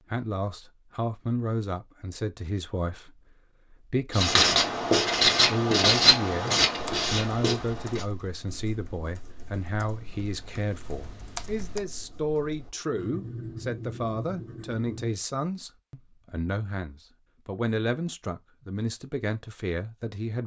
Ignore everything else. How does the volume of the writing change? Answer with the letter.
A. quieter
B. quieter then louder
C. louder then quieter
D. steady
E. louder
B.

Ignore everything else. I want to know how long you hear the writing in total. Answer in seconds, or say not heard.
11 s.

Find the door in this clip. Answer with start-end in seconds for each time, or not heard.
not heard.